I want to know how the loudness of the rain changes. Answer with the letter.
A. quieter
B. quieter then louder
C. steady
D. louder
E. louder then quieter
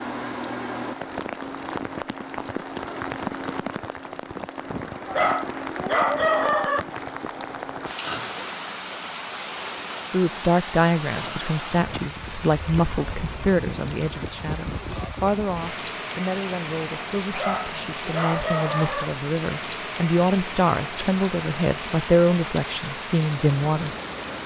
C.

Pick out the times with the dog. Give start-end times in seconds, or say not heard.
5.0-6.8, 17.3-19.1.